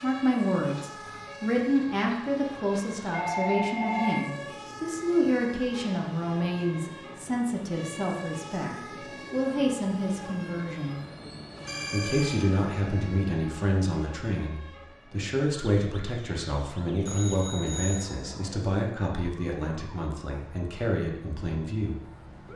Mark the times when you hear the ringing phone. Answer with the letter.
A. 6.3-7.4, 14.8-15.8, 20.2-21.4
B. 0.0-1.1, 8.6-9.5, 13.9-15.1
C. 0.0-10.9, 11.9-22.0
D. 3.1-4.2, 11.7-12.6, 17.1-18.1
D.